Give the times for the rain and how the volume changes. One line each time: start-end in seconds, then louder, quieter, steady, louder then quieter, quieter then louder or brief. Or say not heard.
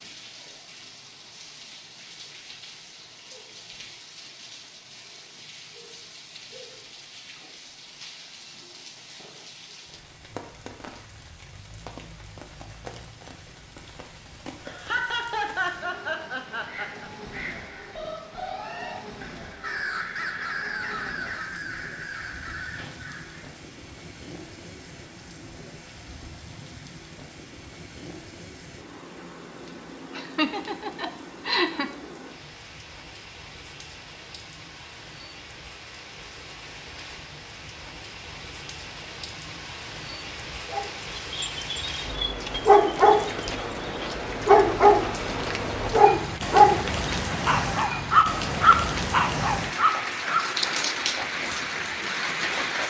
0.0-52.8 louder.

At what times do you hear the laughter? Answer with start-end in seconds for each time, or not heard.
14.7-17.1, 30.1-31.9.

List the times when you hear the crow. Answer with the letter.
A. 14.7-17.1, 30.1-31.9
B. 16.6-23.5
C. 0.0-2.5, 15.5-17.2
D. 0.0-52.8
B.